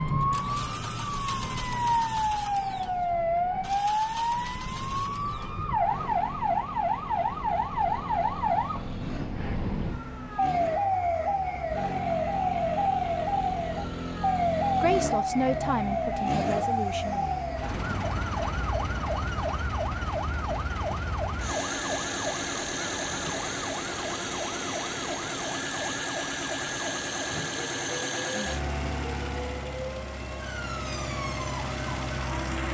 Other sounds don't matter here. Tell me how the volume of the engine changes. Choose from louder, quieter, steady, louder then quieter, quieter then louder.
louder.